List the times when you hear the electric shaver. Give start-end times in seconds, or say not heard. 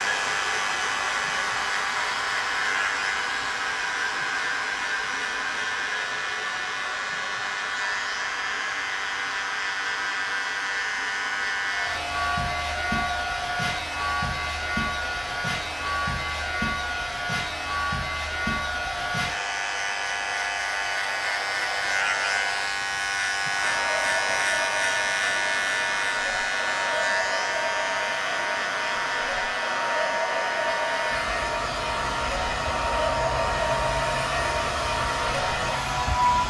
0.0-36.4.